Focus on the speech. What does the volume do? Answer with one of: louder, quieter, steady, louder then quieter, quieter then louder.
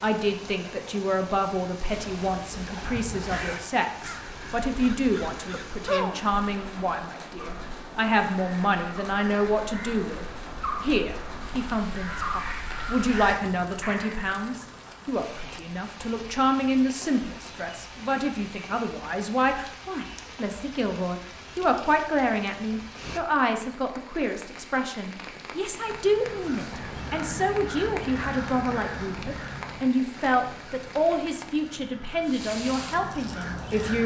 steady.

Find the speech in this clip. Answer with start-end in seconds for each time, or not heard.
0.0-34.0.